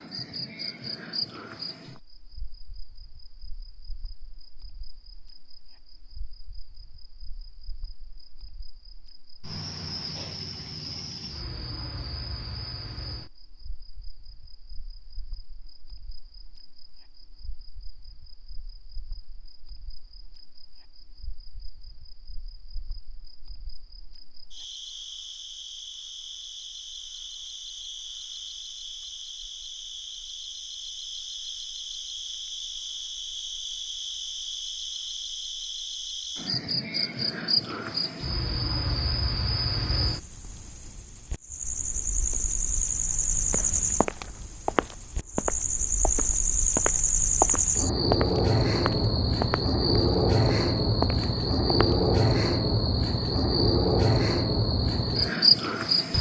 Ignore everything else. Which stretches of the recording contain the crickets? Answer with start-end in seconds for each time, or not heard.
0.0-56.1.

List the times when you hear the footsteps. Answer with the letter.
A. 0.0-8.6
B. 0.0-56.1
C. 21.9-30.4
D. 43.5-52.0
D.